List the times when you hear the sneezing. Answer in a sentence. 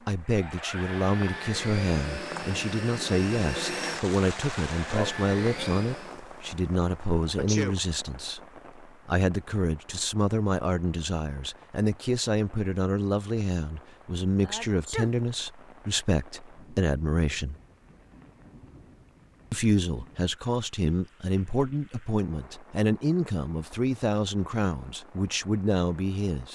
The sneezing can be heard from 7.3 to 7.8 s and from 14.4 to 15.2 s.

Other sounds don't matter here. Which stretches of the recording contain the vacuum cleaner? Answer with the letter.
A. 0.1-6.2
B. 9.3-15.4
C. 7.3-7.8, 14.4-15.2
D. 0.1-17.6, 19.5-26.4
A.